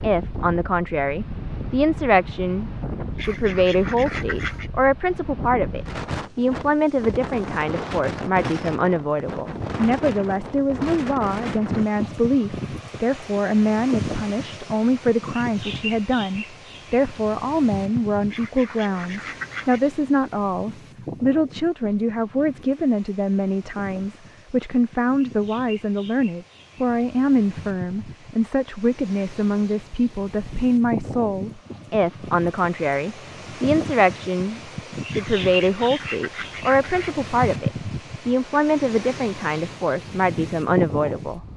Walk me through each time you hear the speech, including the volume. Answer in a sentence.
The speech can be heard from 0.0 to 41.5 s, at a steady volume.